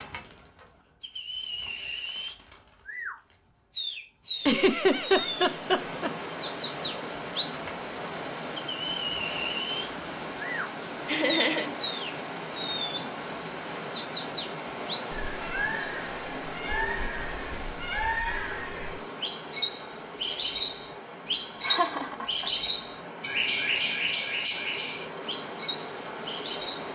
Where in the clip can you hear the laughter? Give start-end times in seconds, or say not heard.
4.5-6.1, 11.1-11.7, 21.6-22.5.